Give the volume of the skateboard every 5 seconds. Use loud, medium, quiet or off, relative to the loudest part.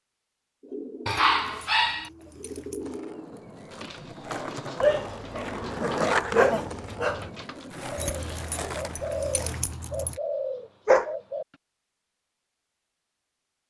medium, loud, off.